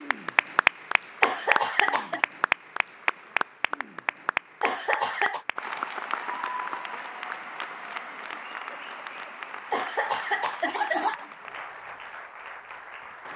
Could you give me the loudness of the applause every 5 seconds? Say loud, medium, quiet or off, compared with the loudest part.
loud, medium, quiet.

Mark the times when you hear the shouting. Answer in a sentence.
The shouting can't be heard in this clip.